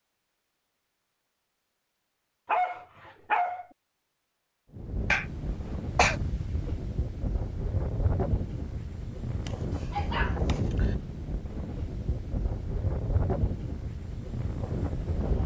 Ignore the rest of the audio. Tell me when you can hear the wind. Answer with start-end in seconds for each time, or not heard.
4.7-15.4.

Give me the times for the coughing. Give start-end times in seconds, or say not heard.
5.1-6.2.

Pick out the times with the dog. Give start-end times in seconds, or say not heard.
2.5-3.6, 9.4-10.9.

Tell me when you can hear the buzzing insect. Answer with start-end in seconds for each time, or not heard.
not heard.